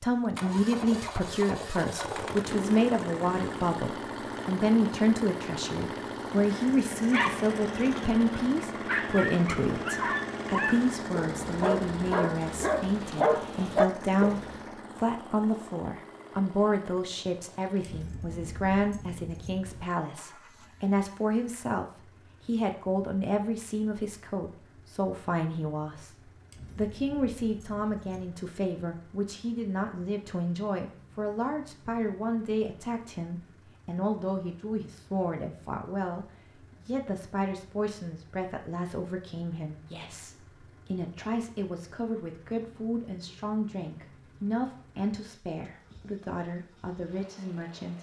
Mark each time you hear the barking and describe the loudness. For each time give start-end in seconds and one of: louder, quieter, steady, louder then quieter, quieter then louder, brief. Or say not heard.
6.9-14.7 louder.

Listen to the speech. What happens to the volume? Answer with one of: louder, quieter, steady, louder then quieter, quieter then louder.
quieter.